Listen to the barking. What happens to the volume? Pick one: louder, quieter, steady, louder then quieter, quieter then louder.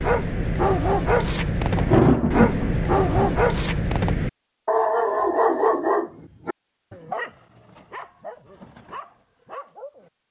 quieter.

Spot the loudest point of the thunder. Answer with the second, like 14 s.
2 s.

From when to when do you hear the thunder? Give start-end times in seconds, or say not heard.
1.8-3.4.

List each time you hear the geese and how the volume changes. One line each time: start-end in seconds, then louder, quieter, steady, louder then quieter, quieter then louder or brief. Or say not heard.
not heard.